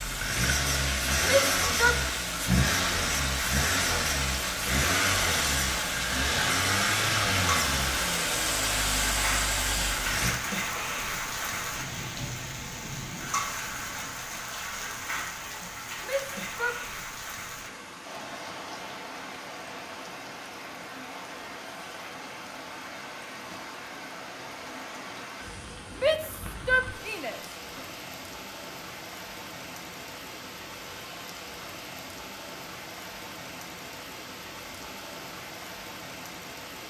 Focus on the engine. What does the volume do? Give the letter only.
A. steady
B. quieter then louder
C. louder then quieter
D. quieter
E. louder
A.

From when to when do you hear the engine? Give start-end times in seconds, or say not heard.
0.0-10.3.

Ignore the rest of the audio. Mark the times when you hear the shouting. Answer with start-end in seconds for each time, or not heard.
1.2-2.0, 16.0-16.8, 26.0-27.4.